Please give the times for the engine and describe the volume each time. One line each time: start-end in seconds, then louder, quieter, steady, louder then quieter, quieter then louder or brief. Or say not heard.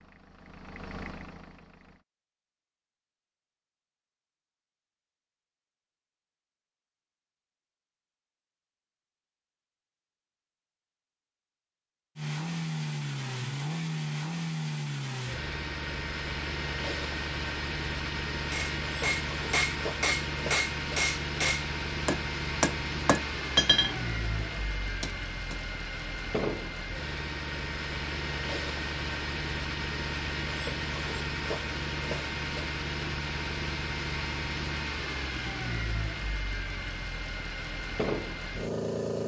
0.0-2.0 brief
12.2-39.2 steady.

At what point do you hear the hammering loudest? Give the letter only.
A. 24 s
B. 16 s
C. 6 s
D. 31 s
A.